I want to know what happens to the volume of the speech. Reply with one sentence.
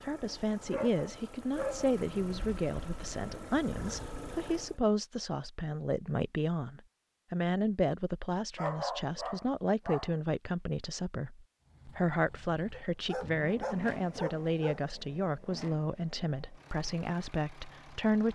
The volume of the speech stays about the same.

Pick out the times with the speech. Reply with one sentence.
The speech can be heard from 0.0 to 18.3 s.